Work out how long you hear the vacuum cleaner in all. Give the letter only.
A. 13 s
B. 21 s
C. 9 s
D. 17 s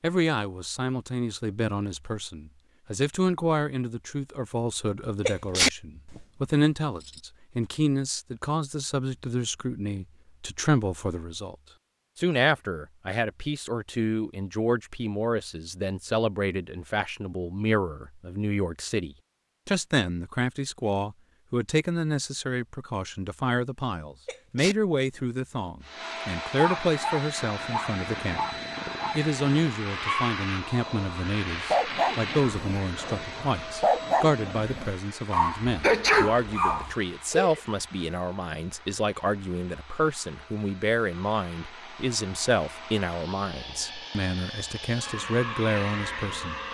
B.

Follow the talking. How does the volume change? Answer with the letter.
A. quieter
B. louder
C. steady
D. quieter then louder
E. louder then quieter
C.